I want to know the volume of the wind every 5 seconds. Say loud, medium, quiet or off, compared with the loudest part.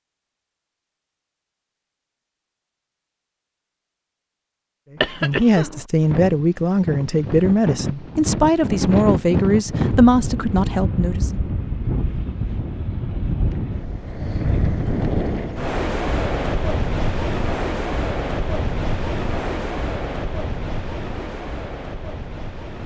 off, loud, loud, loud, medium.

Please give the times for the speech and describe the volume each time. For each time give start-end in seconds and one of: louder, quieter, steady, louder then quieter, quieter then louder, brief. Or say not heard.
5.2-11.4 steady.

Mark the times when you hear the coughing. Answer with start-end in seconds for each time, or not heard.
5.0-5.8.